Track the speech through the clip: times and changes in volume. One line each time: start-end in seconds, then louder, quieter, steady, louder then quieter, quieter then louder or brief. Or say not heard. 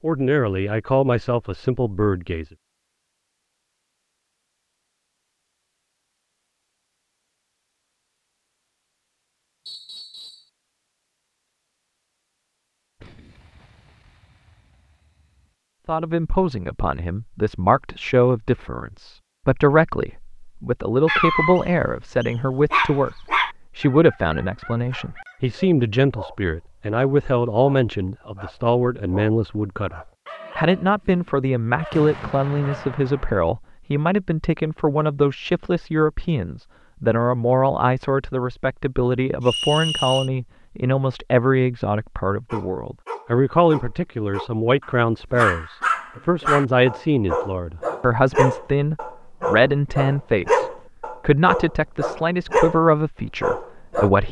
0.0-2.5 brief
15.8-54.2 steady.